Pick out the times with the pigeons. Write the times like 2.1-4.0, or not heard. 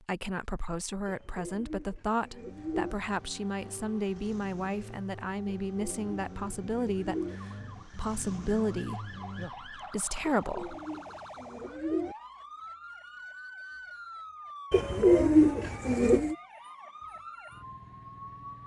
1.1-3.0, 5.7-7.3, 10.2-12.2, 14.7-16.4.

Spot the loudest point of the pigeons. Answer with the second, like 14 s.
15 s.